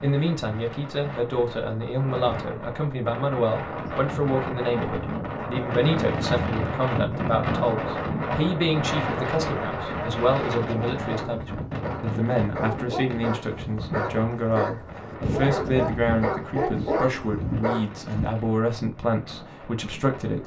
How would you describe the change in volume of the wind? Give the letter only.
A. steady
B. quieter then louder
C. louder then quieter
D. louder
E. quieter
C.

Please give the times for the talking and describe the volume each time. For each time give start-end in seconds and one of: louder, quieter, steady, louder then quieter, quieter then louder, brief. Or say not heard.
0.0-20.4 steady.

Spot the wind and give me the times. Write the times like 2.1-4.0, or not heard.
0.0-20.4.